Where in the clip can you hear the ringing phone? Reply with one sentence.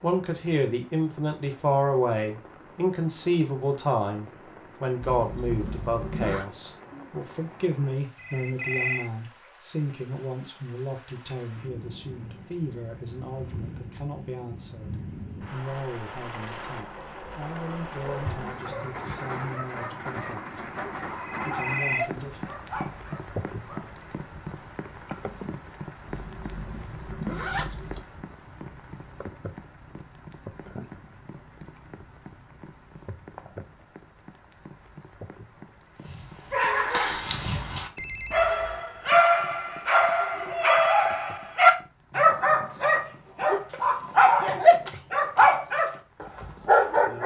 The ringing phone can be heard from 8.2 to 9.1 s, from 21.1 to 22.1 s and from 38.0 to 38.8 s.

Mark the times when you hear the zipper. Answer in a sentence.
You can hear the zipper from 5.0 to 6.5 s and from 26.1 to 28.0 s.